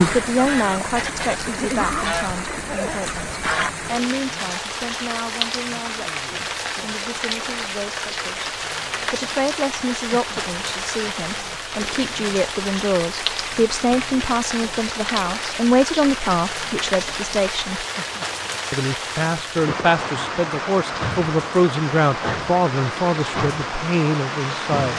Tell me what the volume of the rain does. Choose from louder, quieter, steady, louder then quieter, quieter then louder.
steady.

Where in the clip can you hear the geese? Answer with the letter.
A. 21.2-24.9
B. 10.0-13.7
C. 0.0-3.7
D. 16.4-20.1
C.